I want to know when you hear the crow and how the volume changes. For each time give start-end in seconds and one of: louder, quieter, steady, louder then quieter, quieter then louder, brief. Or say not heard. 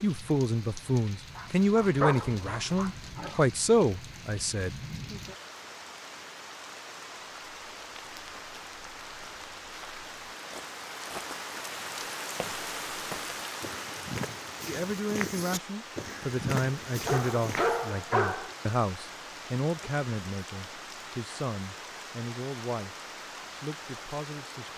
not heard.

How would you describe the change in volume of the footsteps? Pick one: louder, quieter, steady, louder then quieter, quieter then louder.
louder.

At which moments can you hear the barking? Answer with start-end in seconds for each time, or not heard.
1.4-3.5, 17.1-18.6.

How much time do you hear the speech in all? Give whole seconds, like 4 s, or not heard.
14 s.